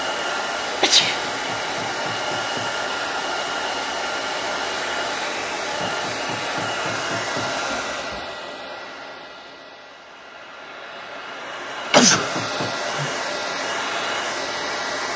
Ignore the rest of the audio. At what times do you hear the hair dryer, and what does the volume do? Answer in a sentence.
The hair dryer can be heard from 0.0 to 15.1 s, getting quieter then louder.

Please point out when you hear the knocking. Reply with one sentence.
You can hear the knocking from 1.0 to 2.8 s, from 5.8 to 7.6 s and from 12.1 to 12.8 s.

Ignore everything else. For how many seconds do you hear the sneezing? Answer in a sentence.
The sneezing can be heard for 2 seconds in total.